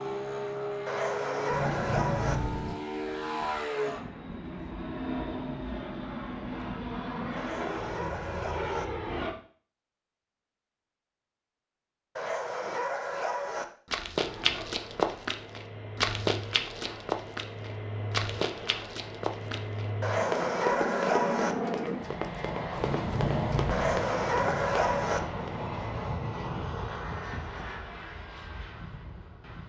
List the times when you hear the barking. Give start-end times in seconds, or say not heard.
0.8-2.4, 7.3-8.8, 12.2-13.7, 20.0-21.6, 23.7-25.2.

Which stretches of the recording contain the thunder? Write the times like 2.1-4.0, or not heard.
1.5-2.8, 22.8-24.0.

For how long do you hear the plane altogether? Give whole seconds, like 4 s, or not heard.
25 s.